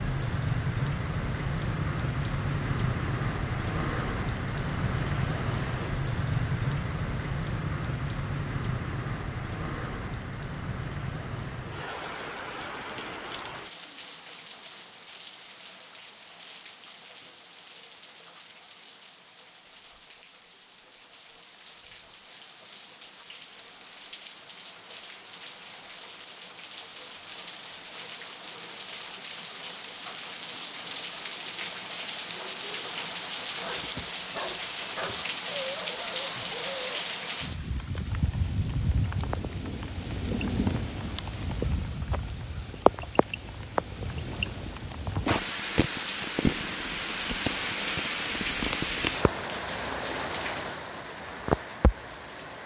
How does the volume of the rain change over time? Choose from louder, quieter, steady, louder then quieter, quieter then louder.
quieter then louder.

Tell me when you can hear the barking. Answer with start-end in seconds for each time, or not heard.
33.6-37.0.